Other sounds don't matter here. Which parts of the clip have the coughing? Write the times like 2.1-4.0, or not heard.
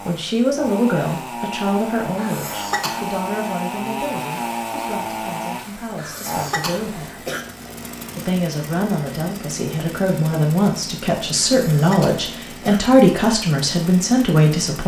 2.1-3.1, 6.0-7.4, 11.6-12.8.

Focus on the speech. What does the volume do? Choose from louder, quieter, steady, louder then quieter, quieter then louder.
quieter then louder.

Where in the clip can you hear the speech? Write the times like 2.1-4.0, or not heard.
0.0-7.2, 8.2-14.8.